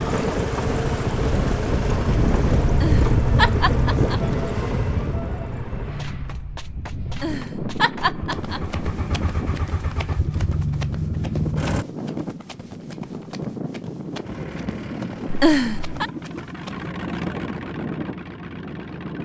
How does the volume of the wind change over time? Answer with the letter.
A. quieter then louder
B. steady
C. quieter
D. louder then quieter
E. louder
C.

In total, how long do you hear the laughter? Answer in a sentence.
The laughter can be heard for 4 seconds in total.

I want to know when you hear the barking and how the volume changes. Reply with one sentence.
You can't hear the barking here.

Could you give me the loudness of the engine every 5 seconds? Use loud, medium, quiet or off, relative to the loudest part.
loud, medium, loud, medium.